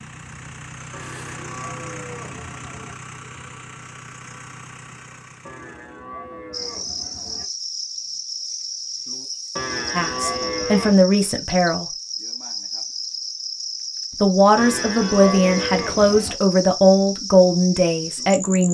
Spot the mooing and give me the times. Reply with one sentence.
The mooing can be heard from 0.9 to 3.0 s, from 5.5 to 7.5 s, from 9.6 to 11.1 s and from 14.6 to 16.4 s.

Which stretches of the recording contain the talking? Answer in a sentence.
You can hear the talking from 9.9 to 11.8 s and from 14.2 to 18.6 s.